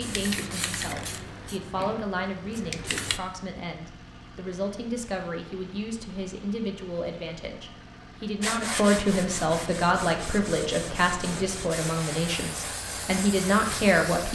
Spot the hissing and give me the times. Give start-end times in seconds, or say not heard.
0.0-3.2, 11.7-14.3.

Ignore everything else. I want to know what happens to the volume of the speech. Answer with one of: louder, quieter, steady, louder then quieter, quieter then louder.
louder.